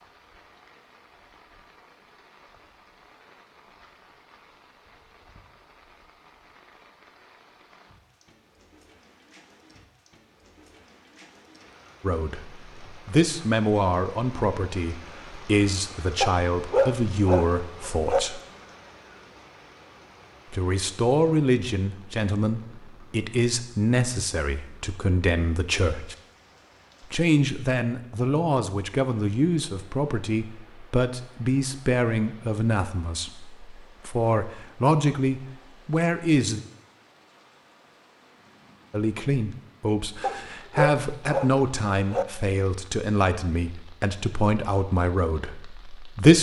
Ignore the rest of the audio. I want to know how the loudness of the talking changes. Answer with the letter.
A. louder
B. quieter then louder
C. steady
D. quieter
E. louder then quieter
C.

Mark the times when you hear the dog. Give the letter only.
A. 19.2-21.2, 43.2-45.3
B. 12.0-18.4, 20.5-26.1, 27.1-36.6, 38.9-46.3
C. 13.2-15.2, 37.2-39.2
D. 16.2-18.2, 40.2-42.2
D.